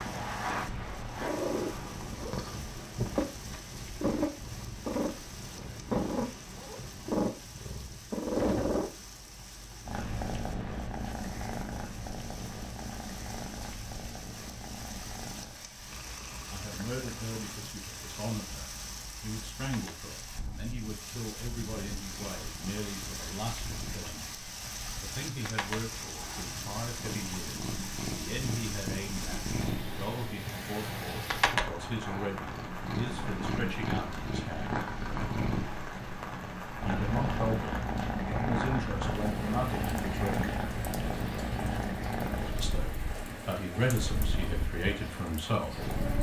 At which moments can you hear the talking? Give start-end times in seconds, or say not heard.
16.3-24.3, 25.0-34.9, 36.9-40.5, 42.6-45.9.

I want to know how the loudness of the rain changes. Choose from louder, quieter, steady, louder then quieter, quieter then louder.
louder.